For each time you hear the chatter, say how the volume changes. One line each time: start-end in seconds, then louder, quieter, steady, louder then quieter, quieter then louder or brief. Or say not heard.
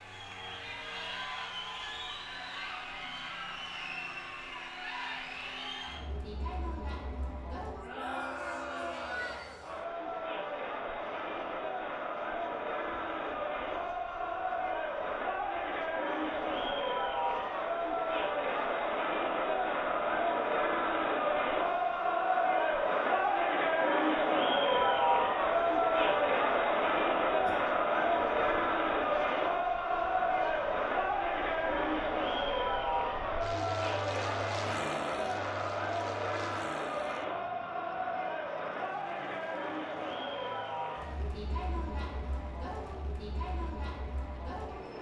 0.0-44.9 louder then quieter.